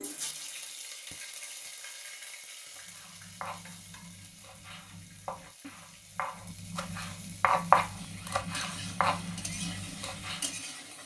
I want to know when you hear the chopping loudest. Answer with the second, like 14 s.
8 s.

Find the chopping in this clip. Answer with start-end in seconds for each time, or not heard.
2.8-10.5.